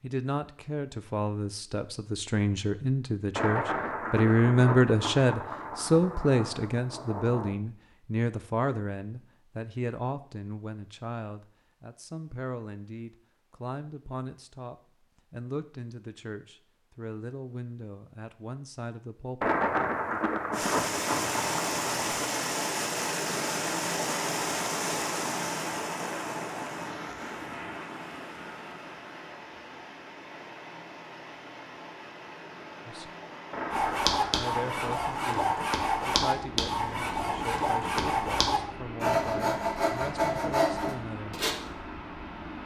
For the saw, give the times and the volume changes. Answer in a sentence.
The saw can be heard from 33.7 to 41.5 s, at a steady volume.